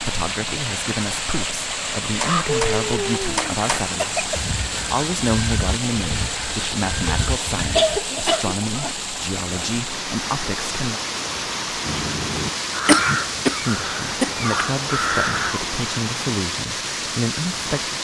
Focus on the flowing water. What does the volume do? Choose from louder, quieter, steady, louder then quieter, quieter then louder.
steady.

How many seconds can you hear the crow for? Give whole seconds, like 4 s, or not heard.
10 s.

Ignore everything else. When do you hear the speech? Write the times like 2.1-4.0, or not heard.
0.0-11.0, 13.6-18.0.